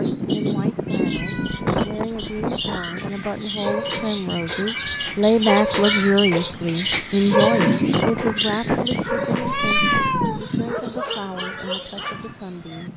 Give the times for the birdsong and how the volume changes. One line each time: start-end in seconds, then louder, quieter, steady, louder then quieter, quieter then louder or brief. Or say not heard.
0.0-12.9 louder then quieter.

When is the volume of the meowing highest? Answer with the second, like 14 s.
10 s.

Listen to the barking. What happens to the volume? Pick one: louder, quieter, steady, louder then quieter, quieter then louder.
louder then quieter.